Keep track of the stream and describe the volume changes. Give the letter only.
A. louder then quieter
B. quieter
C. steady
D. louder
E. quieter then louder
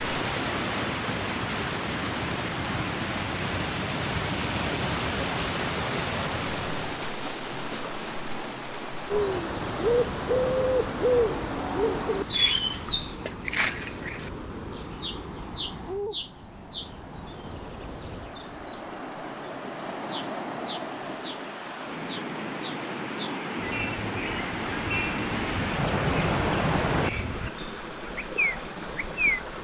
E.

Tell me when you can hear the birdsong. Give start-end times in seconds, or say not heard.
9.1-29.4.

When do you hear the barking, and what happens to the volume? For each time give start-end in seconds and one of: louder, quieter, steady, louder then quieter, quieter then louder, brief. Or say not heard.
not heard.